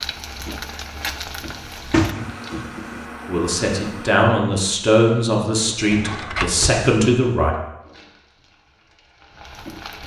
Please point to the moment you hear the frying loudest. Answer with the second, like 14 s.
1 s.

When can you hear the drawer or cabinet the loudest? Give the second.
2 s.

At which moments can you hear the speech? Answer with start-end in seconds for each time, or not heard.
3.2-7.5.